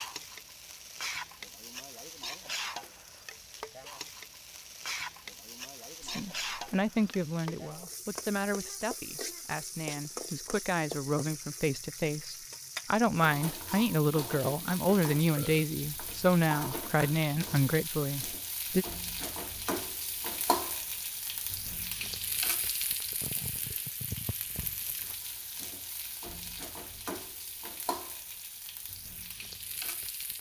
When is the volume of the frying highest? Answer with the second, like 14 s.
20 s.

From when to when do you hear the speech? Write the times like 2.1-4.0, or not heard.
6.0-18.9.